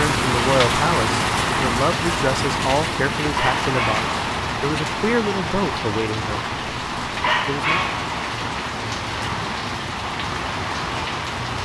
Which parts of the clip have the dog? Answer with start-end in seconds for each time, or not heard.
3.4-4.0, 7.2-8.0.